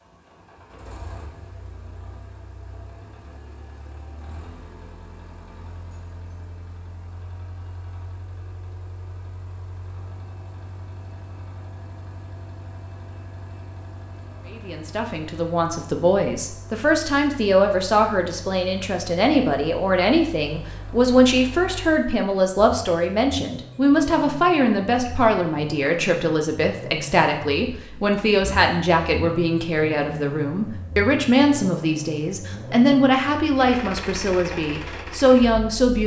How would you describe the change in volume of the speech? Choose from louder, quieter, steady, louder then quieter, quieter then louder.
steady.